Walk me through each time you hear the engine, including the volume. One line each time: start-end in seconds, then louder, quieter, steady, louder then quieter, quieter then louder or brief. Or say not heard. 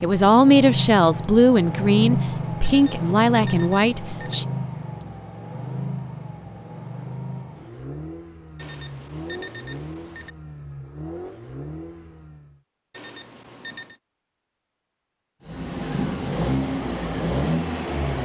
0.0-12.6 quieter
15.4-18.1 brief.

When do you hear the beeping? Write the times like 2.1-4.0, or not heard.
2.6-4.3, 8.6-10.3, 12.9-14.0.